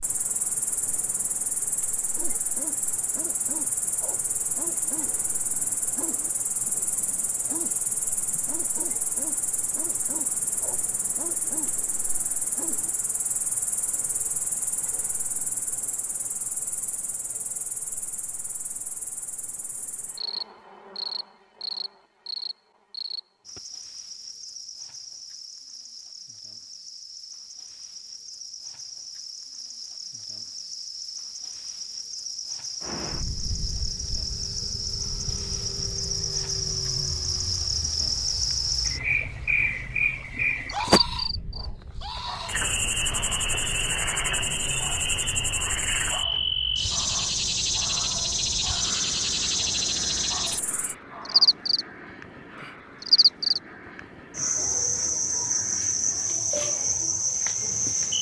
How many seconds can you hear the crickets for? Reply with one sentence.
You can hear the crickets for 58 seconds altogether.